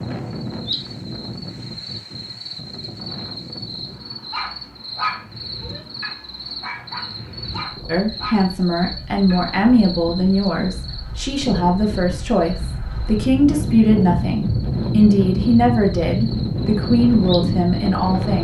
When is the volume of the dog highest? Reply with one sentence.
The loudest moment of the dog is at 5 seconds.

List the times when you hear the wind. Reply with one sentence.
The wind can be heard from 0.0 to 18.4 s.